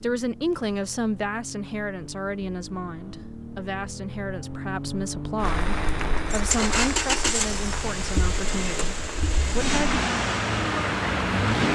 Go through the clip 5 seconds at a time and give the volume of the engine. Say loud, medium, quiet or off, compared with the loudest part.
quiet, loud, loud.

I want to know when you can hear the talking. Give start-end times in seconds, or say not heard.
0.0-10.0.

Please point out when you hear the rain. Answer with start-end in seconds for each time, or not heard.
5.3-11.6.